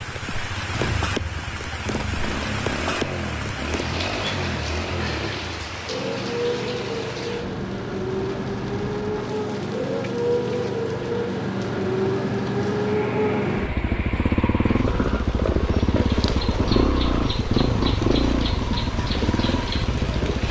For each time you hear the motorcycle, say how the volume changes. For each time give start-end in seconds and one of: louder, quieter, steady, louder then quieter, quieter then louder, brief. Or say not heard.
0.0-20.4 louder.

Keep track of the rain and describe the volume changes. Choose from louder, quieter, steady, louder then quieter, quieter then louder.
quieter then louder.